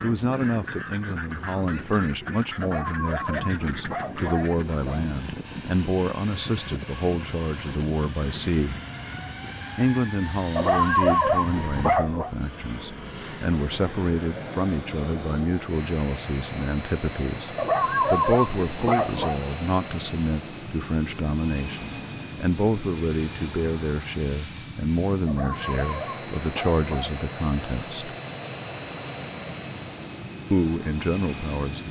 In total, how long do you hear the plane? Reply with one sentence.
The plane can be heard for 32 seconds in total.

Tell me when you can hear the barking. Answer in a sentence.
You can hear the barking from 2.6 to 5.0 s, from 10.6 to 12.3 s, from 17.6 to 19.4 s and from 25.2 to 27.1 s.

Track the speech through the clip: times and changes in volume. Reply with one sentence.
The speech can be heard from 0.0 to 8.8 s, at a steady volume; from 9.8 to 28.1 s, at a steady volume; and briefly from 30.5 to 31.8 s.